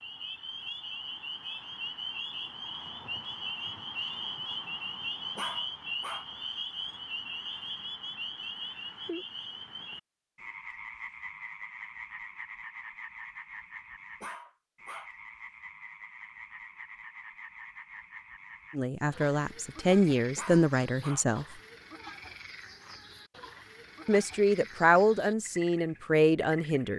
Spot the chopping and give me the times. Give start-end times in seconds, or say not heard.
not heard.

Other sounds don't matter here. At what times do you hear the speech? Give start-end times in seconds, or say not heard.
18.8-21.4, 24.1-26.9.